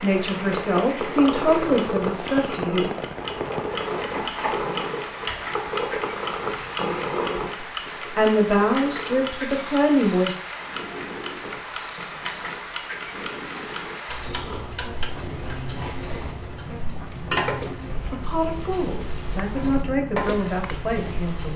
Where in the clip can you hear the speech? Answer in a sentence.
The speech can be heard from 0.0 to 2.9 s, from 7.5 to 10.3 s and from 18.1 to 21.5 s.